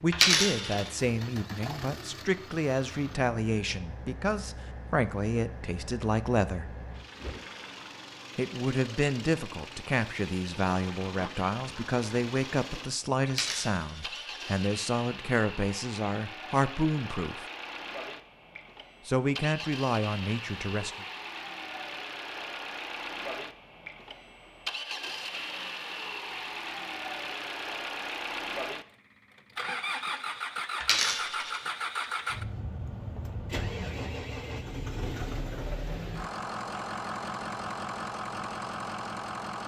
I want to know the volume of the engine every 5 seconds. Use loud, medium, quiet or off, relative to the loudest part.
medium, medium, medium, medium, loud, loud, loud, loud.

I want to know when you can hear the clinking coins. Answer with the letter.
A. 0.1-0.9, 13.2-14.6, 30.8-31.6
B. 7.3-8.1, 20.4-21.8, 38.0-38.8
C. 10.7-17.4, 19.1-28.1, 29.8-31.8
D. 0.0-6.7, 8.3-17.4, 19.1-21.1
A.